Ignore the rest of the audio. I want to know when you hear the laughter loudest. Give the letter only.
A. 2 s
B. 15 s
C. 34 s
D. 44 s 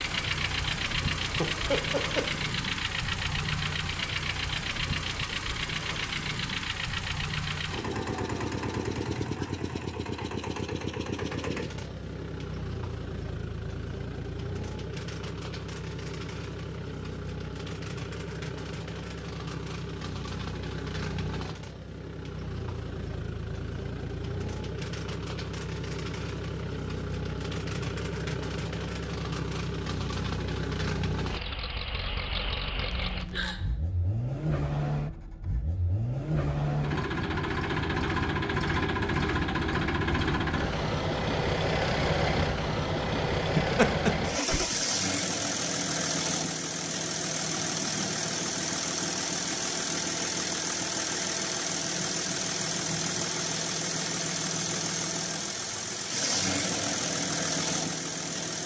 D.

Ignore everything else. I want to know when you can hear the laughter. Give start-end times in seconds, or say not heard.
1.4-2.3, 32.9-33.6, 43.5-44.6.